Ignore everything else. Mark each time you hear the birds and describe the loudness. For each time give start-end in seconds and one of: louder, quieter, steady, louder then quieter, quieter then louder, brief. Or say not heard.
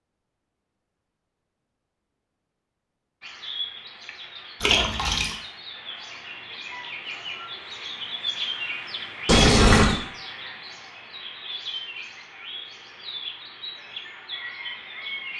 3.2-15.3 louder then quieter.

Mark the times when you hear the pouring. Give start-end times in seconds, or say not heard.
4.6-5.3, 9.2-9.9.